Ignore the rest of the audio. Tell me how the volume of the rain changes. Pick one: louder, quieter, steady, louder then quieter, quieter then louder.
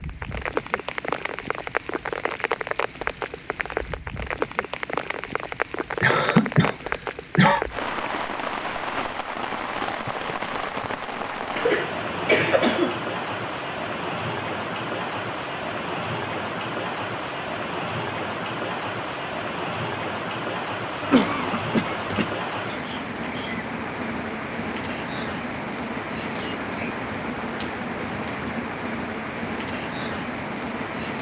steady.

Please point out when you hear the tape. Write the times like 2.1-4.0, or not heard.
not heard.